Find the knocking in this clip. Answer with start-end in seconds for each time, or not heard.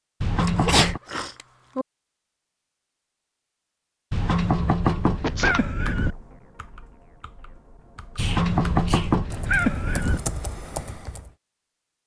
0.2-1.0, 4.1-6.2, 8.2-10.2.